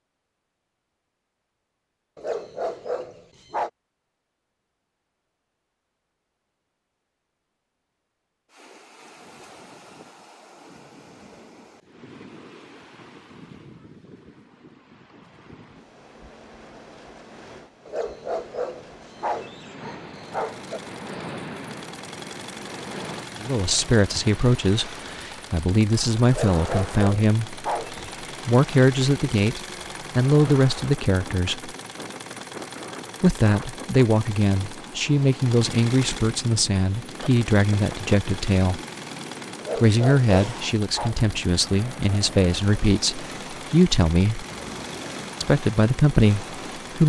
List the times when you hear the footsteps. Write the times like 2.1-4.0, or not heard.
not heard.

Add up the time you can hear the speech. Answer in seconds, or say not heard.
19 s.